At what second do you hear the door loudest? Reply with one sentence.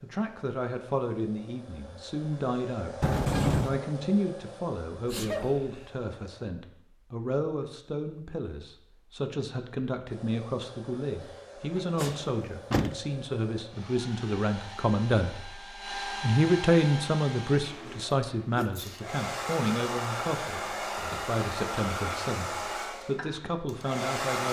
The volume of the door peaks at 3 seconds.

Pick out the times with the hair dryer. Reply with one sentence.
You can hear the hair dryer from 0.0 to 6.5 s and from 10.1 to 24.4 s.